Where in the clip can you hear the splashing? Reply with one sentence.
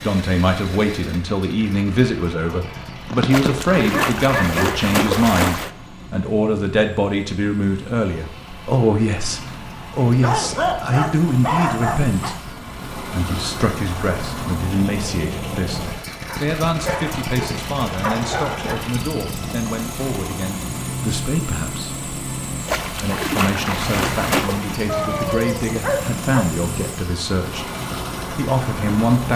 You can hear the splashing from 3.3 to 5.7 s and from 22.6 to 24.6 s.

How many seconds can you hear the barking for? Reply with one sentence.
The barking can be heard for 8 seconds in total.